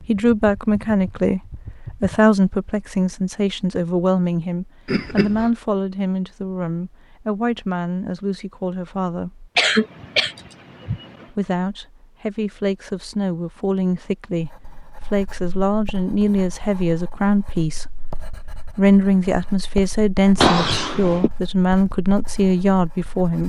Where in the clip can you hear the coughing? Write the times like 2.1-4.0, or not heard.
4.8-5.5, 9.6-11.2, 20.4-21.3.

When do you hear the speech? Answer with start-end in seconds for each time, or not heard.
0.0-9.5, 11.3-23.4.